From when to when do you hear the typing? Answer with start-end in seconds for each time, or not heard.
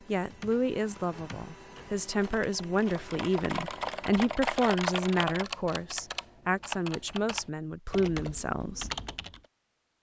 0.1-9.4.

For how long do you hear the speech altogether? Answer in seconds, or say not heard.
9 s.